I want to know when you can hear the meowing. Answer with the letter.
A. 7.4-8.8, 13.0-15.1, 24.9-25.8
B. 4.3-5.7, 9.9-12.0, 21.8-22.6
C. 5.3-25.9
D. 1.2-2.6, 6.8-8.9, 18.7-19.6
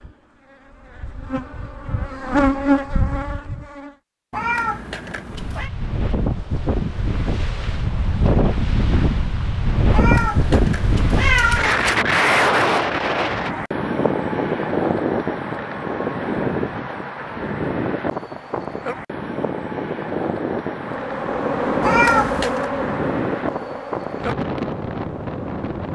B.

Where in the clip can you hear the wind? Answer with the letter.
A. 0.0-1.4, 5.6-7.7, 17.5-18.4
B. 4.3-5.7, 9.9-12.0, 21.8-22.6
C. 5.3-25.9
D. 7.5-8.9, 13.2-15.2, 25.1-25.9
C.